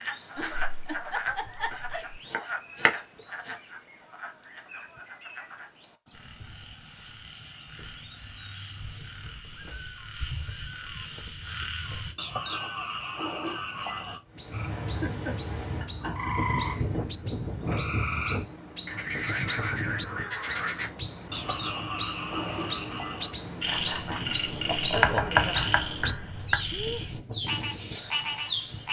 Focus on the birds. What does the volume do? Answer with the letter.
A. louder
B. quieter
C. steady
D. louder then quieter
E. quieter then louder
A.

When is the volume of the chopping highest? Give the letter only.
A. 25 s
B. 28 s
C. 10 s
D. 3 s
A.